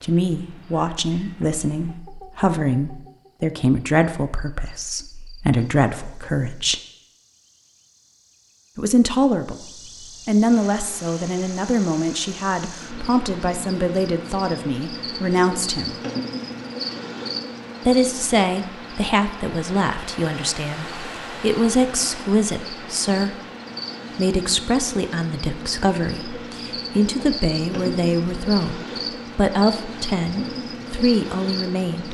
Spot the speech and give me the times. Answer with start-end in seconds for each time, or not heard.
0.0-6.8, 8.8-9.6, 10.2-15.9, 17.9-23.4, 24.1-32.1.